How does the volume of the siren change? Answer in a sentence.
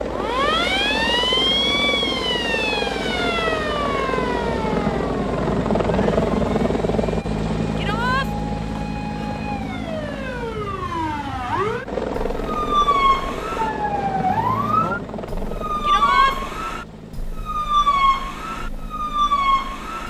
The loudness of the siren goes down, then up.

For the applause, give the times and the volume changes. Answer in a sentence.
The applause can't be heard in this clip.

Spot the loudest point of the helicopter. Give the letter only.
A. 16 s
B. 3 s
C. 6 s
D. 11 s
C.